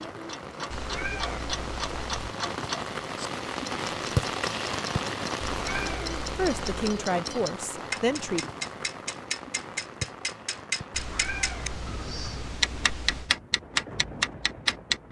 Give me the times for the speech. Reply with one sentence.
The speech can be heard from 6.3 to 8.5 s.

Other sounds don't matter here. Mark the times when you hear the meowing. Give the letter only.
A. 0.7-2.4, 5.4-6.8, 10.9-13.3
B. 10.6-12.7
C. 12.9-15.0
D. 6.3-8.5
A.